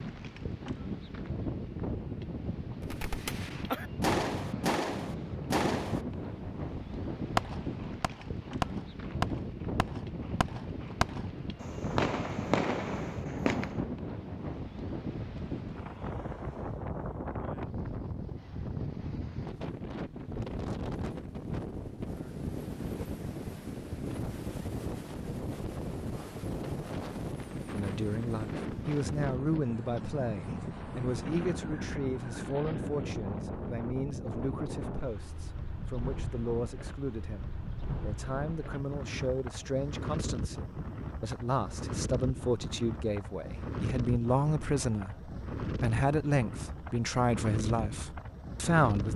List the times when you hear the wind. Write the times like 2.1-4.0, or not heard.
0.0-49.1.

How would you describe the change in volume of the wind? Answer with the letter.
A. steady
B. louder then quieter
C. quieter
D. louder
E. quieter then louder
A.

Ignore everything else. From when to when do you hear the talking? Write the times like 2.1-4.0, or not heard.
27.7-49.1.